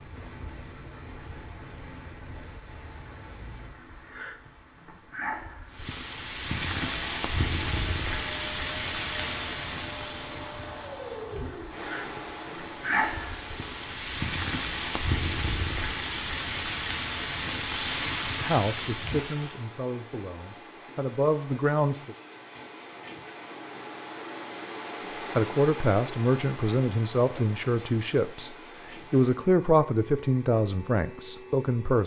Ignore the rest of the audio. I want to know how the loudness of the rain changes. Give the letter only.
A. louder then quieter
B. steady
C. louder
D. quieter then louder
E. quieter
C.